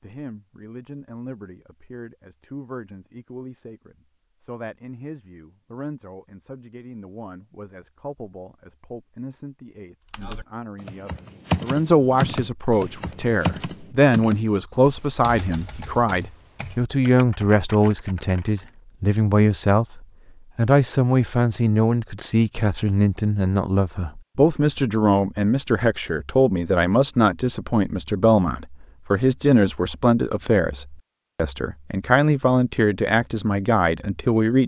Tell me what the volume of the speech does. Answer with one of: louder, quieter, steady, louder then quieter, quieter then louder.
louder.